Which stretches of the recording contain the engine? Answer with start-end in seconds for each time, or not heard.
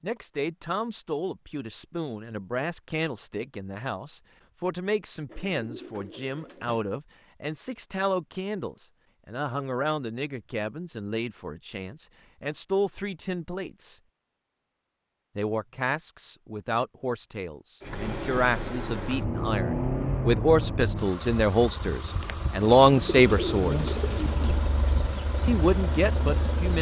17.8-26.7.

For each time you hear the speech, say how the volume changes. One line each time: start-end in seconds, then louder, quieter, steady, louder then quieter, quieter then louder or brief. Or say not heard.
0.0-14.0 steady
15.3-23.9 louder
25.4-26.7 brief.